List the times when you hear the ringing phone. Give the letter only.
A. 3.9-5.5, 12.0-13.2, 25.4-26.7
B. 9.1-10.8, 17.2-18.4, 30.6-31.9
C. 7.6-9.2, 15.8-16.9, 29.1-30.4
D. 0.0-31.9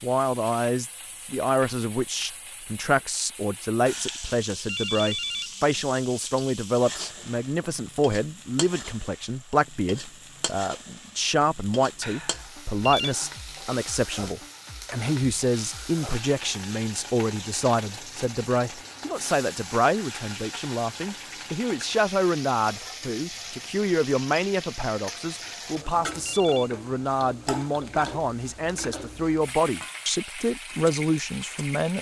A.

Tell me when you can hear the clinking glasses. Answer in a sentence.
You can't hear the clinking glasses here.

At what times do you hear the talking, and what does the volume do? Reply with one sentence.
You can hear the talking from 0.0 to 31.9 s, at a steady volume.